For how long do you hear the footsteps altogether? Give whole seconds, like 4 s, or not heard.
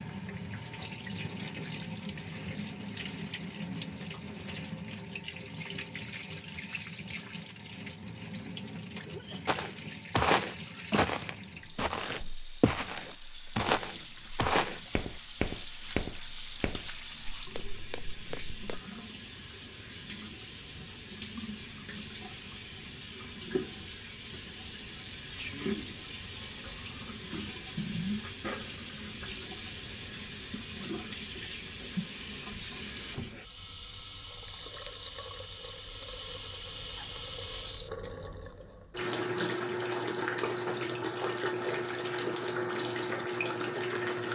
9 s.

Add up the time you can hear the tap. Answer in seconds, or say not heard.
44 s.